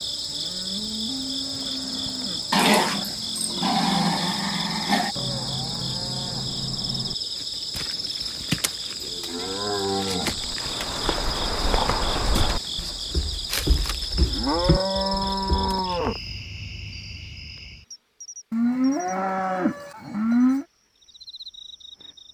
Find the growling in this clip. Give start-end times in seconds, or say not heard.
2.5-5.2.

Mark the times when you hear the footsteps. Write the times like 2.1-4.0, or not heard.
10.3-15.8.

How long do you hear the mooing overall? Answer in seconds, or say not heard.
10 s.